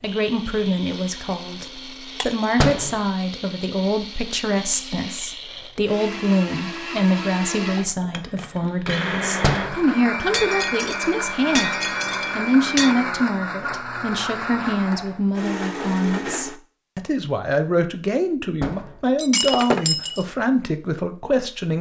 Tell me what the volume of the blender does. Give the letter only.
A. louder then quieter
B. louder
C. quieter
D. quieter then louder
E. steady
B.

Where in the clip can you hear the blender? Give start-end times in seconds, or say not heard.
0.0-16.6.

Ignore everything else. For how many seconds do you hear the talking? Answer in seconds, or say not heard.
22 s.